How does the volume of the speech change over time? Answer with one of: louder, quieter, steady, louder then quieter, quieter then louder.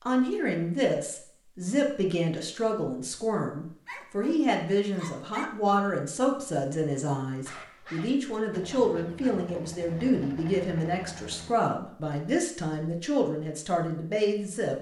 steady.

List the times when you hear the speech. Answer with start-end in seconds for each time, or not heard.
0.0-14.7.